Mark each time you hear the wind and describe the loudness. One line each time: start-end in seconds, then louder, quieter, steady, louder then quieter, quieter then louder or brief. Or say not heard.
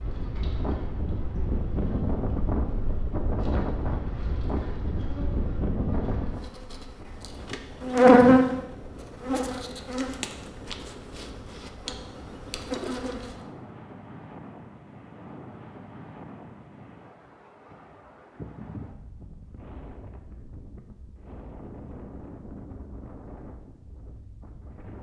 0.0-24.9 quieter.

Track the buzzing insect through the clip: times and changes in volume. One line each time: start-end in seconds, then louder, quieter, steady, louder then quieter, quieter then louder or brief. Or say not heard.
0.0-13.3 louder then quieter.